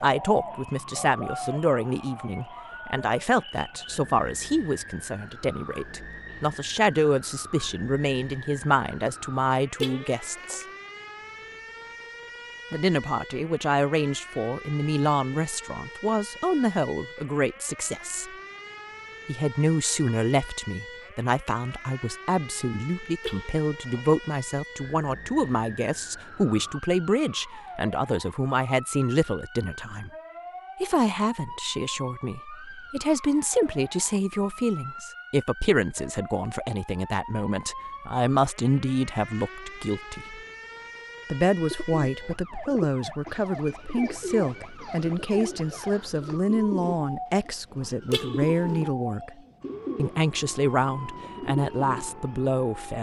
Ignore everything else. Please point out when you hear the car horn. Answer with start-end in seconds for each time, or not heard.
9.8-10.7, 23.2-24.1, 48.1-48.9.